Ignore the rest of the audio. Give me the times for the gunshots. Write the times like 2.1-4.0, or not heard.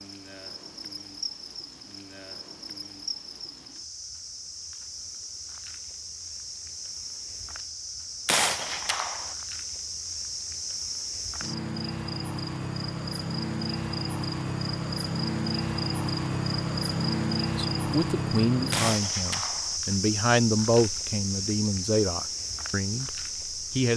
8.2-9.3, 18.7-19.8.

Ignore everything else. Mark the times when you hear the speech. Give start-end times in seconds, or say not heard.
17.6-23.9.